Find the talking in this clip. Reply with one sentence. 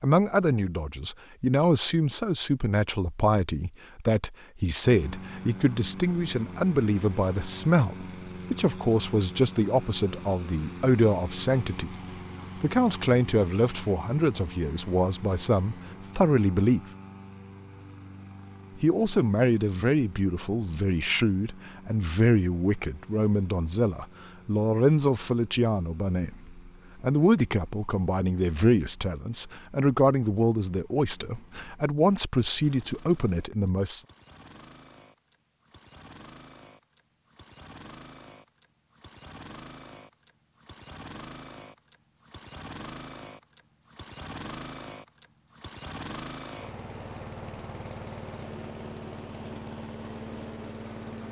You can hear the talking from 0.0 to 11.9 s, from 12.6 to 16.8 s and from 18.8 to 34.0 s.